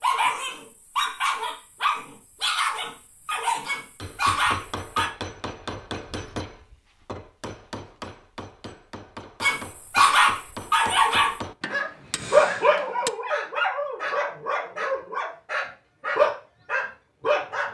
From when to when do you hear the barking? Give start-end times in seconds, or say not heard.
0.0-5.1, 9.4-17.7.